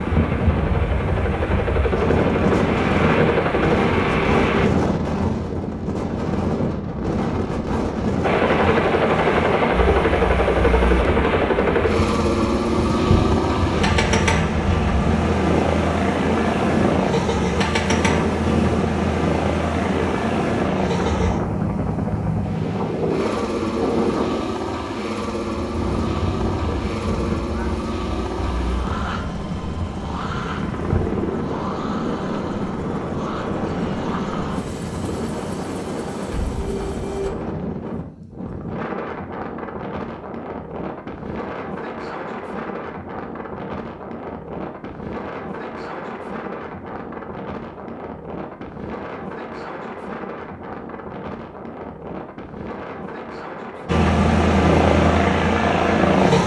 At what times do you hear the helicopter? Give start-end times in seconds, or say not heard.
0.0-4.7, 8.2-37.3, 53.9-56.4.